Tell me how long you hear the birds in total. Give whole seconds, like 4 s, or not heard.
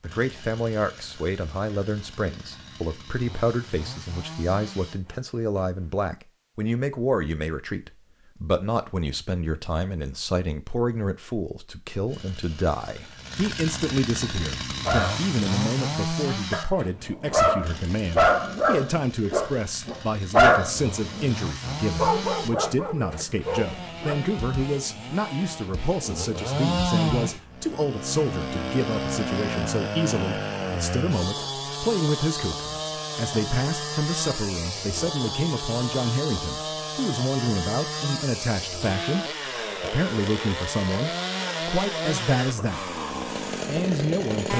not heard.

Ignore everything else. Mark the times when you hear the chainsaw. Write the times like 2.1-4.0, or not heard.
0.0-5.9, 12.1-44.5.